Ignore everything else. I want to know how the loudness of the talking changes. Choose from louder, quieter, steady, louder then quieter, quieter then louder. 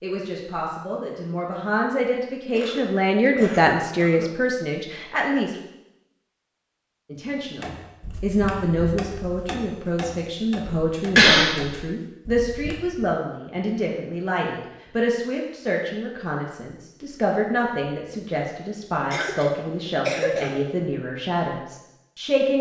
steady.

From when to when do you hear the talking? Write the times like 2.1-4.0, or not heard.
0.0-5.5, 7.1-22.5.